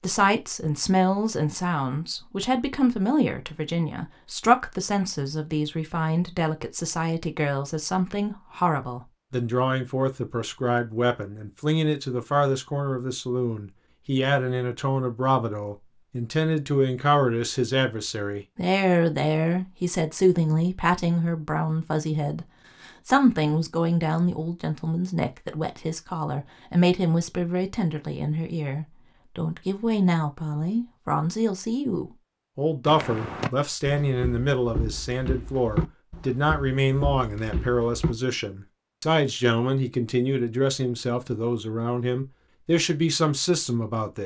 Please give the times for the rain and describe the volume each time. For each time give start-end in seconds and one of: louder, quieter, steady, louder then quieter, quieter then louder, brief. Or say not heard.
not heard.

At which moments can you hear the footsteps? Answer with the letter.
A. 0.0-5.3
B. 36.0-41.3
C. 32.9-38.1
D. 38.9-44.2
C.